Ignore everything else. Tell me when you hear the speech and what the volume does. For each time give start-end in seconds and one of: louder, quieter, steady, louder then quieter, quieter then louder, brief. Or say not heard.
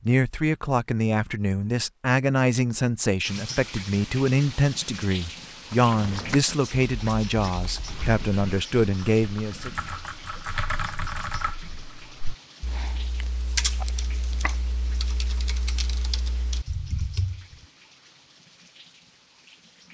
0.1-9.7 steady.